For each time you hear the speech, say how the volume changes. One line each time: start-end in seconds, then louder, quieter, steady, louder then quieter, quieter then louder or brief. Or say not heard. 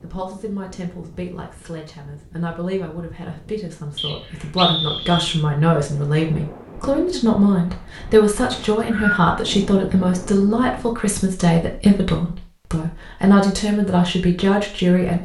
0.0-15.1 louder.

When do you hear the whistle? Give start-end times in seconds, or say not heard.
4.0-5.4, 8.5-9.3.